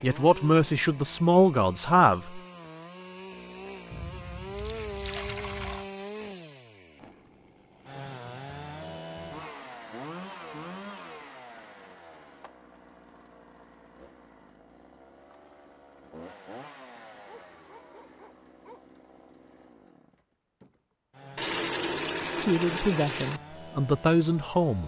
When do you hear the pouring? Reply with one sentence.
You can hear the pouring from 3.9 to 5.8 s and from 21.4 to 23.4 s.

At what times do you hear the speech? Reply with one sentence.
You can hear the speech from 0.0 to 2.4 s and from 22.4 to 24.8 s.